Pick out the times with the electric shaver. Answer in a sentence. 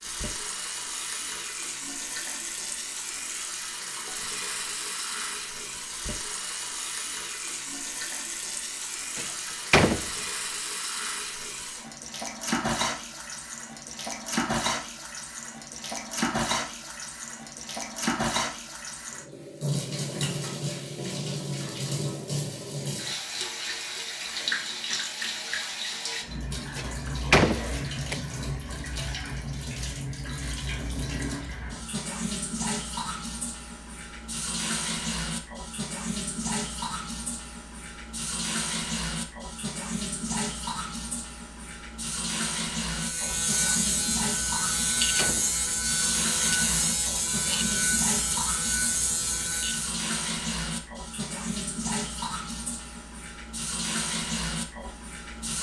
The electric shaver can be heard from 42.9 to 50.0 s.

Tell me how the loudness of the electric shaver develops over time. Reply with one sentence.
The volume of the electric shaver stays about the same.